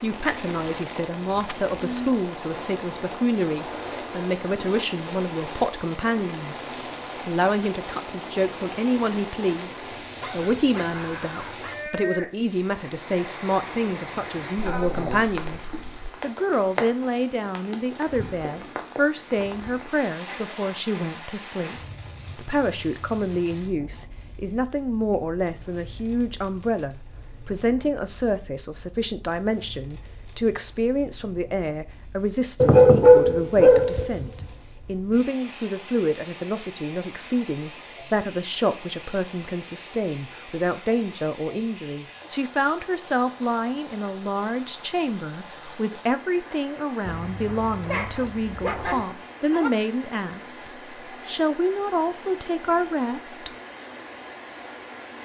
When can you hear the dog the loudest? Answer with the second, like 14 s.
33 s.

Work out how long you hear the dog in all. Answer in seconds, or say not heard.
7 s.